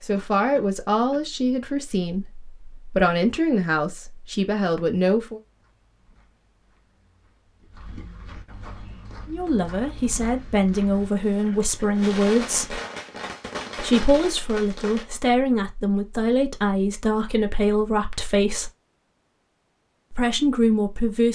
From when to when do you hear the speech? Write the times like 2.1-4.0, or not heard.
0.0-5.4, 9.2-12.8, 13.8-18.7, 20.1-21.3.